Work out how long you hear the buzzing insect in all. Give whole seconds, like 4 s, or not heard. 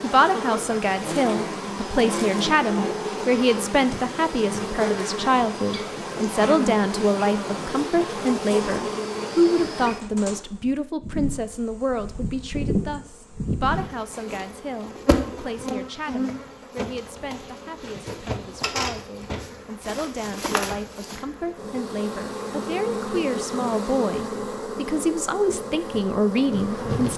27 s.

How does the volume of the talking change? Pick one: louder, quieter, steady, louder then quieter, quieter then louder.
quieter then louder.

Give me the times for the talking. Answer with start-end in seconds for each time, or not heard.
0.0-27.1.